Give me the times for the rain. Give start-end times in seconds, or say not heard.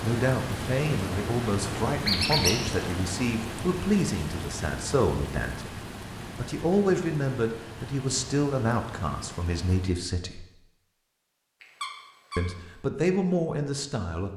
0.0-10.1.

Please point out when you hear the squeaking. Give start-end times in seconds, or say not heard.
2.0-2.6, 11.6-12.5.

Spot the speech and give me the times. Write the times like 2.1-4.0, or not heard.
0.0-10.4, 12.3-14.3.